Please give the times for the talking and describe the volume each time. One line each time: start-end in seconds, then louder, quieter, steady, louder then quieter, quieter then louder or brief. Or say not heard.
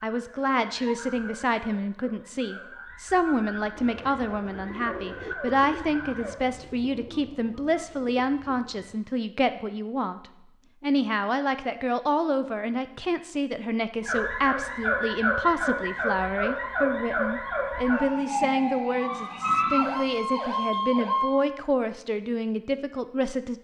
0.0-23.6 steady.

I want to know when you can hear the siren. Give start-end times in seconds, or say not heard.
0.1-6.3, 14.0-21.4.